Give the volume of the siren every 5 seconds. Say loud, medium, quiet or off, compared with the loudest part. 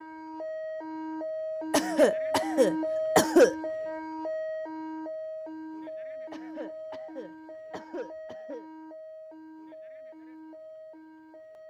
loud, medium, quiet.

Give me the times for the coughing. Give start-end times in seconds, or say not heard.
1.7-3.5, 6.3-8.7.